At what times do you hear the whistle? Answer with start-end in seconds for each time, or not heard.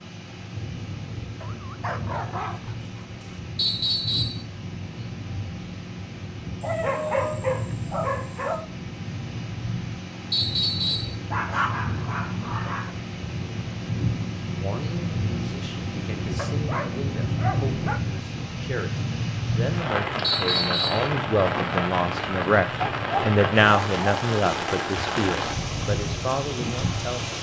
3.5-4.4, 10.3-11.2, 20.2-21.1.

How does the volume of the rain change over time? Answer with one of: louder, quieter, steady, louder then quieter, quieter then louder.
louder.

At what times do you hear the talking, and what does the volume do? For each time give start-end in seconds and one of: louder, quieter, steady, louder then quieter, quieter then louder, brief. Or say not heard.
14.6-27.3 louder then quieter.